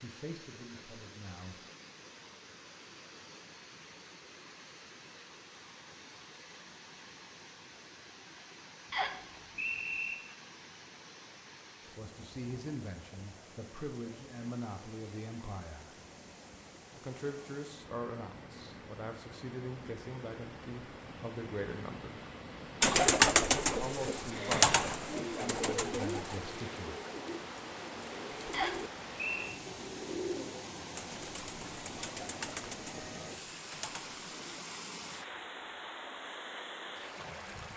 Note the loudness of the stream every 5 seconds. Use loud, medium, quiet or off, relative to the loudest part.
medium, medium, medium, medium, loud, loud, loud, loud.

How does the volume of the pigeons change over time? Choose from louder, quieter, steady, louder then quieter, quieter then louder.
quieter.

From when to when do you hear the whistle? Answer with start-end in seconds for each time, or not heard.
8.9-10.2, 28.5-29.6.